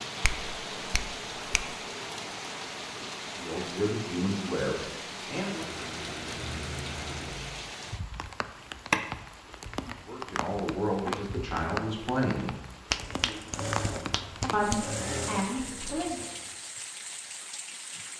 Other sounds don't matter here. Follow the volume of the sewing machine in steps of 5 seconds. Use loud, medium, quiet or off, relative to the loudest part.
off, loud, loud, loud.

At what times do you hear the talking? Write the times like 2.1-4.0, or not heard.
3.4-5.7, 10.1-12.6, 14.5-16.2.